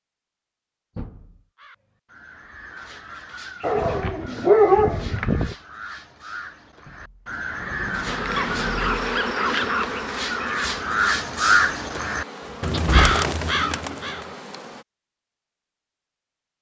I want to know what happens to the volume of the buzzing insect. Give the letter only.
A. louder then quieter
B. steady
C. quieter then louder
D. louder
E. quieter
E.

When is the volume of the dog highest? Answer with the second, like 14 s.
5 s.